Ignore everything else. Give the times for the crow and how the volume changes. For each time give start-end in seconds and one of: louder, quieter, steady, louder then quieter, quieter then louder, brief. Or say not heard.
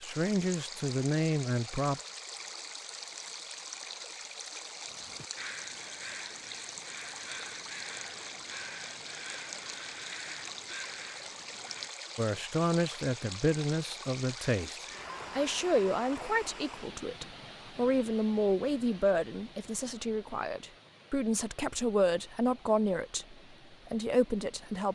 4.8-11.9 steady.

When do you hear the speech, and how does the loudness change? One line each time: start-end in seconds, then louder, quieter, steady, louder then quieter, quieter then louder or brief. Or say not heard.
0.0-2.0 brief
12.2-24.9 steady.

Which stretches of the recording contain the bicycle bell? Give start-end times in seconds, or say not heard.
not heard.